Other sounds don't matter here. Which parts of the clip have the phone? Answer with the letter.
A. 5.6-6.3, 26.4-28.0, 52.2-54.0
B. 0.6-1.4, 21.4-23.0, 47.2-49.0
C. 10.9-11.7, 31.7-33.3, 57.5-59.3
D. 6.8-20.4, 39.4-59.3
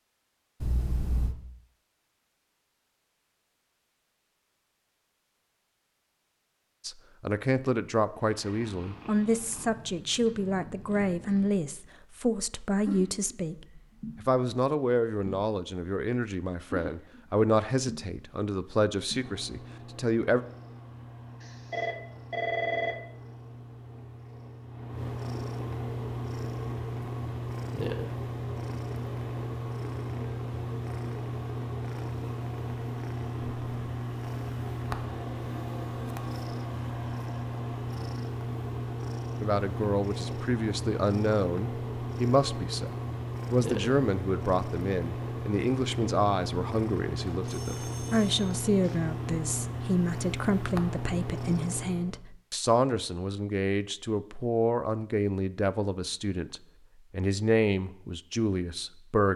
B.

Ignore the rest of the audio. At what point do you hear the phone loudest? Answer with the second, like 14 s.
23 s.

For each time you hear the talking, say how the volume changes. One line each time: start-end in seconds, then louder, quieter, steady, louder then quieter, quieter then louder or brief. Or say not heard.
6.8-20.4 steady
39.4-59.3 steady.